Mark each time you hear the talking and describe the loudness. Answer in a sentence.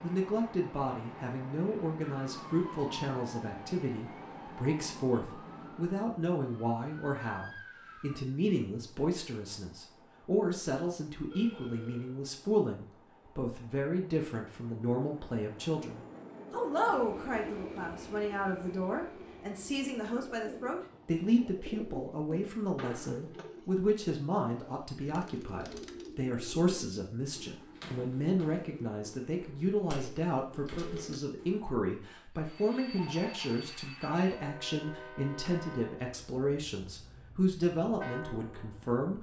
The talking can be heard from 0.0 to 39.1 s, at a steady volume.